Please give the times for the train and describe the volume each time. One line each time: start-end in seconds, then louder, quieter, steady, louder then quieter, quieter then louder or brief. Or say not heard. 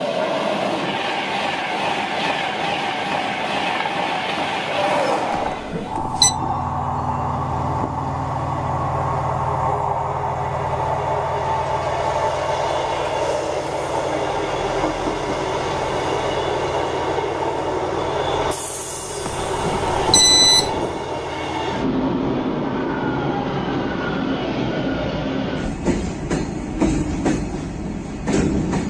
0.0-28.8 steady.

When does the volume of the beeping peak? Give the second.
20 s.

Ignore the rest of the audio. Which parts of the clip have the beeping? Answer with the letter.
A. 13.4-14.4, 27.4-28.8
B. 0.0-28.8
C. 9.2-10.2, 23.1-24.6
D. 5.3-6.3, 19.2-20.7
D.